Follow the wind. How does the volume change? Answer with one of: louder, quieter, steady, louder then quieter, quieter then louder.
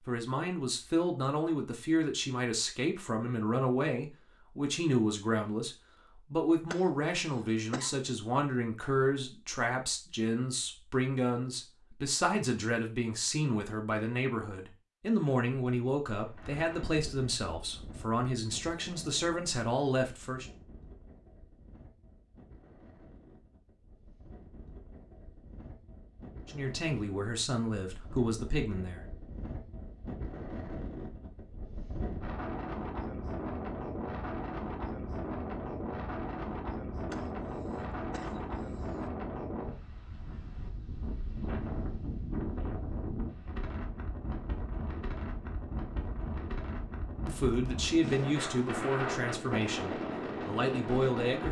louder.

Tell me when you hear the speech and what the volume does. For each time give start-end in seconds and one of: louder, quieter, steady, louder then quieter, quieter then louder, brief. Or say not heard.
0.1-20.4 steady
26.4-29.0 brief
47.2-51.4 quieter then louder.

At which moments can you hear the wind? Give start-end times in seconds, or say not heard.
16.2-51.4.